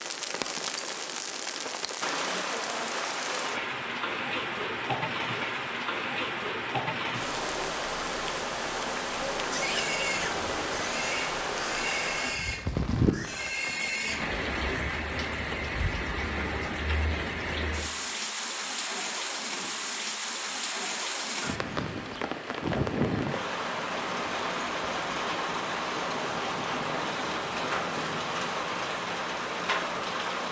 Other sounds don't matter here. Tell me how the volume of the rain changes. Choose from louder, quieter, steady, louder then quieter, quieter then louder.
steady.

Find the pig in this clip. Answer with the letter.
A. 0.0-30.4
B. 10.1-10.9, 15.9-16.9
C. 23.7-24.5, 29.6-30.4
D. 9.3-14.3
D.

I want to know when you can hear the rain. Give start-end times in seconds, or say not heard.
0.0-30.4.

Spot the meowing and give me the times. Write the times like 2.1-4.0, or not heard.
10.1-10.9, 15.9-16.9.